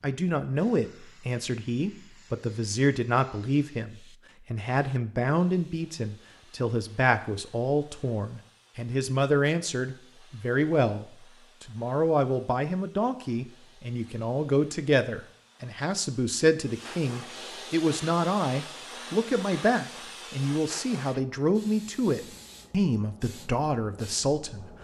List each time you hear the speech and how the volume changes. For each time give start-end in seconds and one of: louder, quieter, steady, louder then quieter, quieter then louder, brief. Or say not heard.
0.0-24.6 steady.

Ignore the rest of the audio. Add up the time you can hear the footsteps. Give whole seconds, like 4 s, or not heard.
not heard.